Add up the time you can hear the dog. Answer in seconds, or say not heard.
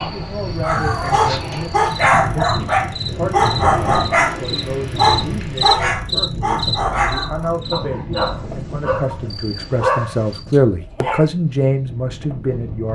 11 s.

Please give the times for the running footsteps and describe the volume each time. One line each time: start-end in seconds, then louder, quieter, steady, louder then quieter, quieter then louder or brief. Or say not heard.
not heard.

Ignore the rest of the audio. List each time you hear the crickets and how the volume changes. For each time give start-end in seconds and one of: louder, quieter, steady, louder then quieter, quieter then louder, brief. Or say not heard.
0.0-10.4 louder then quieter.